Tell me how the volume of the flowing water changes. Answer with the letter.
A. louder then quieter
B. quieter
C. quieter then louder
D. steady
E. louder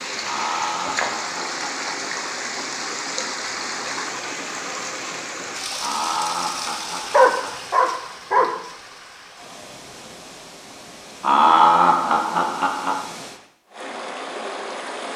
C.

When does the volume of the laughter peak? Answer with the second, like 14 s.
12 s.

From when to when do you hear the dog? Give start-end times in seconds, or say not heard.
7.1-8.5.